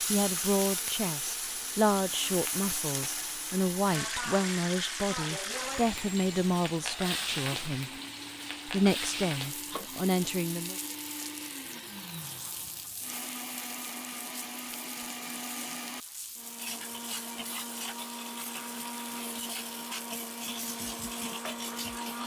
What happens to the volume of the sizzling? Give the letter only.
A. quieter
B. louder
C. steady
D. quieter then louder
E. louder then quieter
A.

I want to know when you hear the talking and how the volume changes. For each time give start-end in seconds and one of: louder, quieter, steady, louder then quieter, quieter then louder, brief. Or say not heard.
0.1-7.9 steady
8.7-10.8 brief.